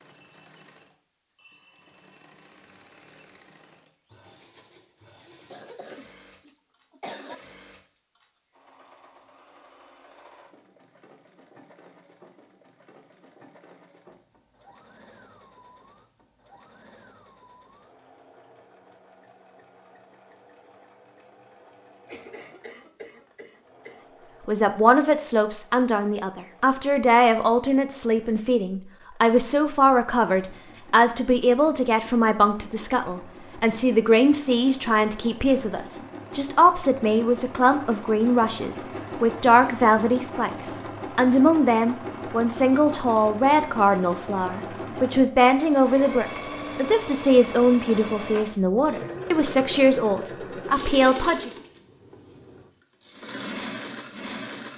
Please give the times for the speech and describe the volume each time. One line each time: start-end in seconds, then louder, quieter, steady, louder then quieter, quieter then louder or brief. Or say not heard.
24.4-51.5 steady.